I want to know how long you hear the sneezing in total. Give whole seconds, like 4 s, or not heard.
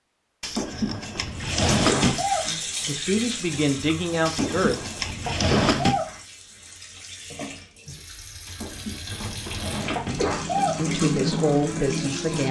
5 s.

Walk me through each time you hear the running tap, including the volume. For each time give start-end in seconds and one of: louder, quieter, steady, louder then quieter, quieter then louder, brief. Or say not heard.
1.3-12.4 quieter then louder.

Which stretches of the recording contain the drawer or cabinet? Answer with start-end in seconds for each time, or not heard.
0.4-2.2, 4.2-6.0, 8.4-10.3.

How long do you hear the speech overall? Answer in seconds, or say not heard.
4 s.